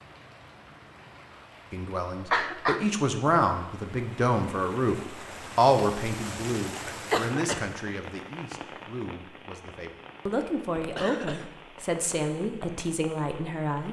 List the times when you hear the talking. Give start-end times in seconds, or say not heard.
1.7-13.8.